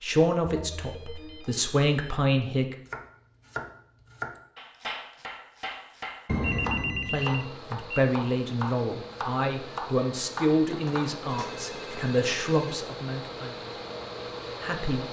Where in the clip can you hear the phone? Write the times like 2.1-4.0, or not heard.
0.5-2.2, 6.2-8.1, 10.7-12.8.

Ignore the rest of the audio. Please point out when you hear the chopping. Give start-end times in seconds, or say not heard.
2.9-11.6.